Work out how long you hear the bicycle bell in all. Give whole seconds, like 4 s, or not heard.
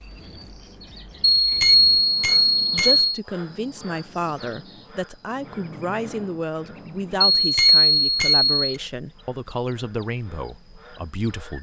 3 s.